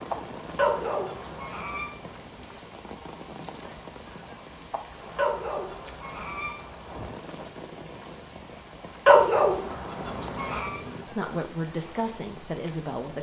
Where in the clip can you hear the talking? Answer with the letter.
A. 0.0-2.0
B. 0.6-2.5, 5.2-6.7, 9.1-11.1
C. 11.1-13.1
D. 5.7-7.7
C.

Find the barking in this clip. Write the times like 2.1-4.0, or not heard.
0.6-2.5, 5.2-6.7, 9.1-11.1.